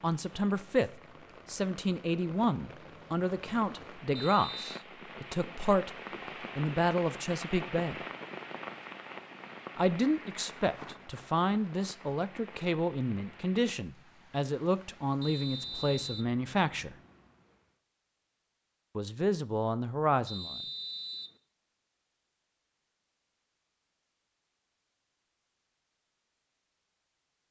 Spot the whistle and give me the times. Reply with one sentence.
The whistle can be heard from 4.2 to 4.8 s, from 15.2 to 16.3 s and from 20.2 to 21.4 s.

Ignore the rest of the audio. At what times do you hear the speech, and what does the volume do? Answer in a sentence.
You can hear the speech from 0.0 to 5.9 s, getting quieter; briefly from 6.5 to 8.0 s; from 9.8 to 16.9 s, at a steady volume; and briefly from 18.9 to 20.6 s.